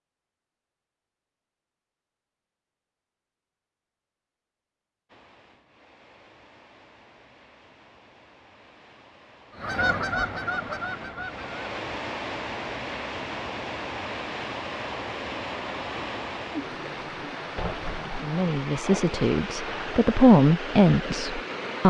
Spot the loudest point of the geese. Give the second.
10 s.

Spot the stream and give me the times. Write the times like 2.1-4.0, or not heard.
5.0-21.8.